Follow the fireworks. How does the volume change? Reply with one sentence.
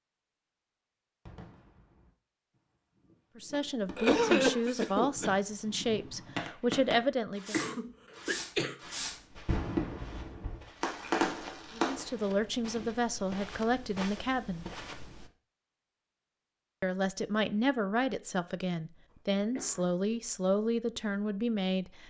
The volume of the fireworks goes up.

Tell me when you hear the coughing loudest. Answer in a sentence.
The loudest moment of the coughing is at 4 seconds.